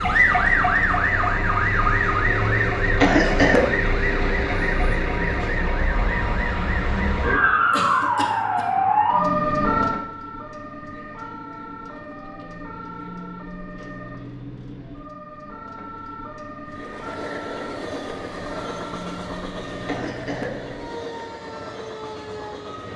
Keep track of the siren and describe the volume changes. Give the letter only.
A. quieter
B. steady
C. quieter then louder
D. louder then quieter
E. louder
A.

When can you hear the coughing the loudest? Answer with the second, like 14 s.
3 s.